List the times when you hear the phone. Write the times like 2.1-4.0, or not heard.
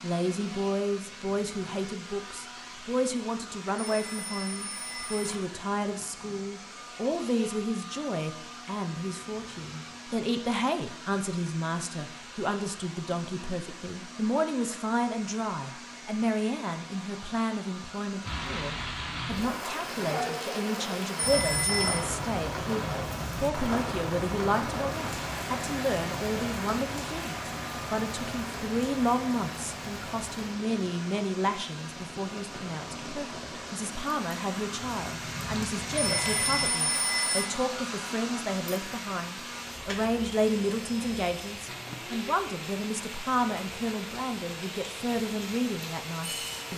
3.8-5.4, 21.1-22.1, 35.9-37.5.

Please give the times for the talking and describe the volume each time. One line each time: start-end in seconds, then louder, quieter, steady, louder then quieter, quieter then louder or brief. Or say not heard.
0.0-46.7 steady.